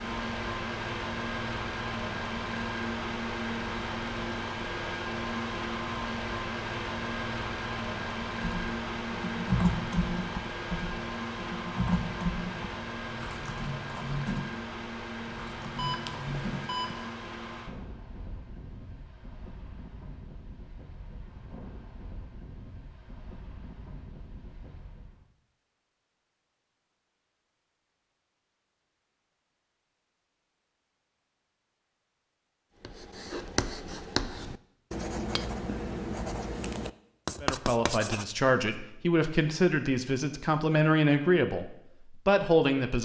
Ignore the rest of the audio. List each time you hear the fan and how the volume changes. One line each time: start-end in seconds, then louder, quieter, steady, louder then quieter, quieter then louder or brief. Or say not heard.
0.0-25.2 quieter.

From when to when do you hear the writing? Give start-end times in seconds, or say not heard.
32.8-38.2.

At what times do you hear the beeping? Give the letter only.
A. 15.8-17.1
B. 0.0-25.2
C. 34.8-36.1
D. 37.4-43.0
A.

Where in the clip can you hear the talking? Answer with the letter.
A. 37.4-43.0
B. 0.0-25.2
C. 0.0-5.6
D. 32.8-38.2
A.